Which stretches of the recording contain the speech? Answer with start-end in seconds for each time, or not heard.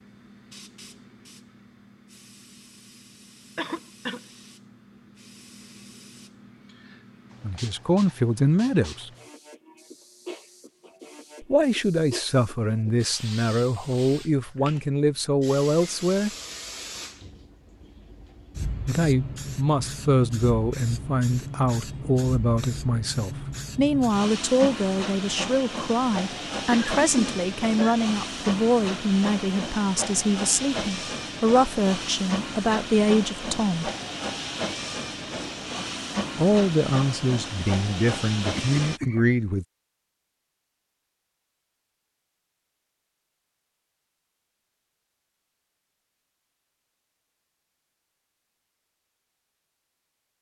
7.4-9.1, 11.4-16.3, 18.9-33.9, 36.4-39.6.